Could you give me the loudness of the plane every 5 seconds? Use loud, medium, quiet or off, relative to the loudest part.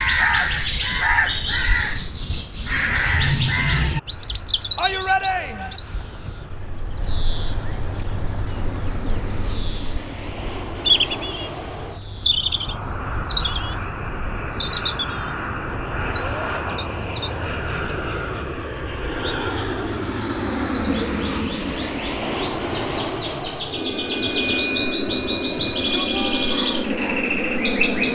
quiet, quiet, medium, loud, loud, loud.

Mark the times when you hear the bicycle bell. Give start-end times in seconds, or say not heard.
not heard.